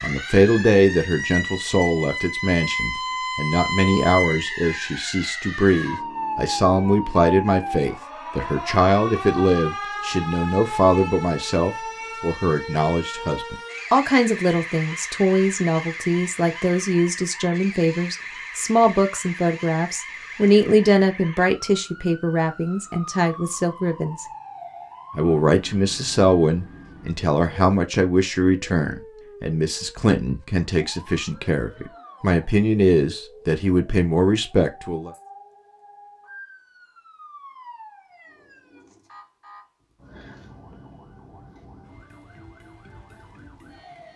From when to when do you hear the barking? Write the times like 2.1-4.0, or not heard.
not heard.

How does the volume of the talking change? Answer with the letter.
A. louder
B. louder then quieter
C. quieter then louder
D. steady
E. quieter
D.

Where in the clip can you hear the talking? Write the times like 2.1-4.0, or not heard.
0.0-24.2, 25.1-35.1.